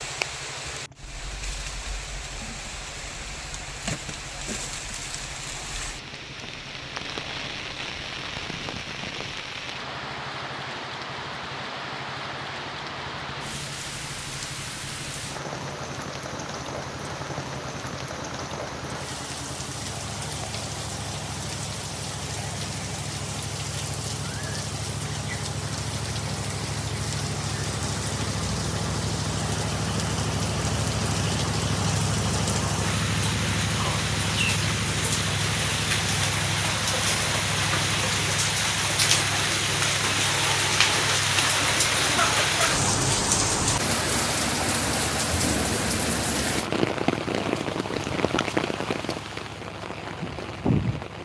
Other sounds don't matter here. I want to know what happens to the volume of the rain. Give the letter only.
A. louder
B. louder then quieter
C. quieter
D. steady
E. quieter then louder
A.